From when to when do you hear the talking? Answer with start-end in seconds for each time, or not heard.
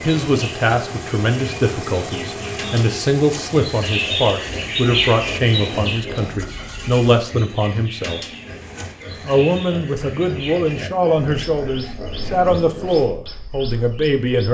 0.0-8.2, 9.2-14.4.